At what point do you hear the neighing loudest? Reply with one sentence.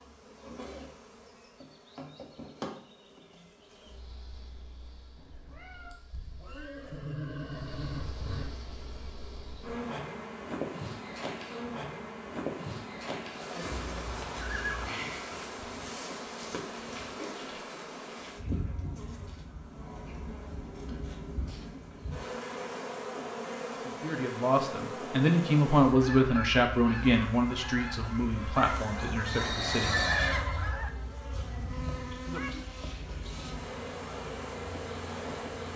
The volume of the neighing peaks at 30 seconds.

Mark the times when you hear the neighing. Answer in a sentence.
You can hear the neighing from 5.9 to 8.4 s, from 13.6 to 15.3 s and from 29.2 to 30.4 s.